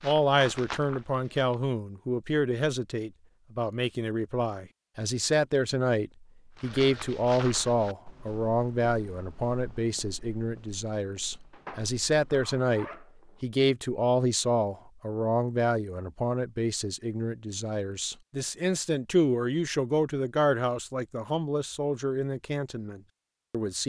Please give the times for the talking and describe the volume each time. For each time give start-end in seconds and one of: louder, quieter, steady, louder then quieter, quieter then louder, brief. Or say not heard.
0.0-23.8 steady.